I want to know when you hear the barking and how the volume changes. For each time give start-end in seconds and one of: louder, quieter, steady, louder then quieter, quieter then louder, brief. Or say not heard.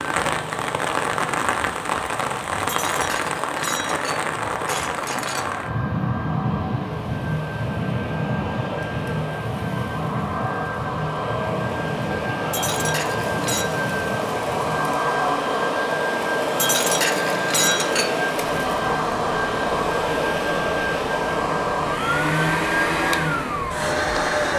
not heard.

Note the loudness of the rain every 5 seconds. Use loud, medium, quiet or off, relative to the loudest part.
loud, loud, medium, medium, medium.